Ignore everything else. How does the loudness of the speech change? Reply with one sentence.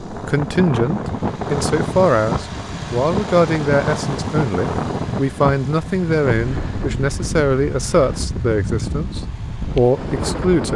The volume of the speech stays about the same.